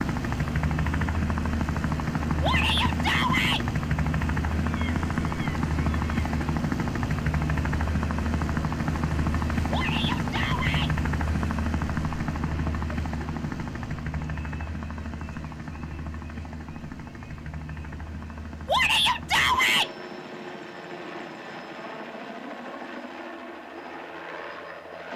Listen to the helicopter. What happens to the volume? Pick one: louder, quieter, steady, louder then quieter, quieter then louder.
quieter.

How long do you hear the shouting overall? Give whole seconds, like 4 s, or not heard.
4 s.